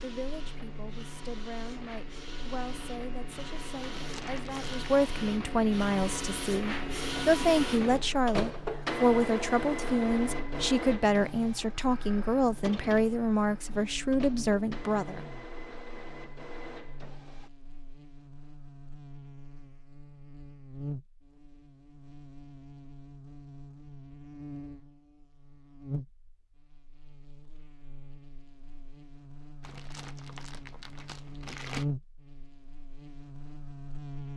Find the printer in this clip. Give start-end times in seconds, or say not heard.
0.0-17.5.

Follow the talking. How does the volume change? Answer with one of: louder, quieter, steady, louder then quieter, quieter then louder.
louder.